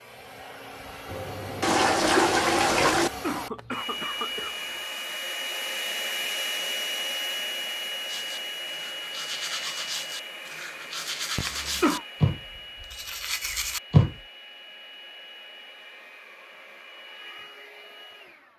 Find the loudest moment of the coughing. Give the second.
12 s.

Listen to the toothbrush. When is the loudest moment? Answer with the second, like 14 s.
14 s.